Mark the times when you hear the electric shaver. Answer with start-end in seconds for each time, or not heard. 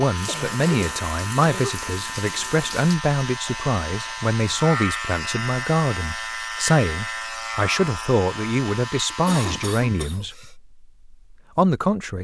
0.0-10.1.